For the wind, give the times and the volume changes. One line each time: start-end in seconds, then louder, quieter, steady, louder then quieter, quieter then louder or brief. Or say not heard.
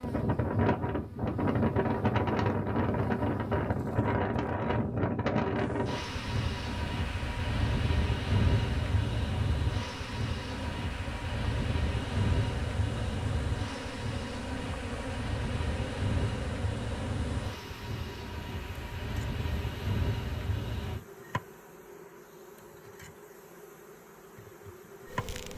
0.0-21.0 quieter.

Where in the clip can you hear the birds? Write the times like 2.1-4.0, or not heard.
not heard.